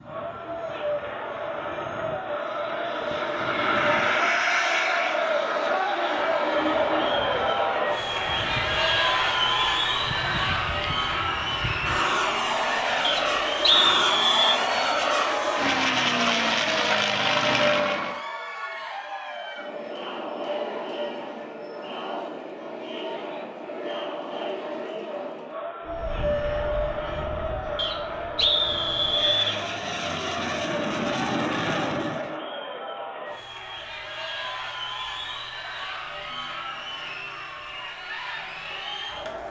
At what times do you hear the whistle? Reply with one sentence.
The whistle can be heard from 13.0 to 14.6 s and from 27.8 to 29.6 s.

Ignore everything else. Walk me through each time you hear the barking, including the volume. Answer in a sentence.
The barking can't be heard in this clip.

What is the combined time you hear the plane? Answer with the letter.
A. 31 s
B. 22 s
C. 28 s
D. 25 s
D.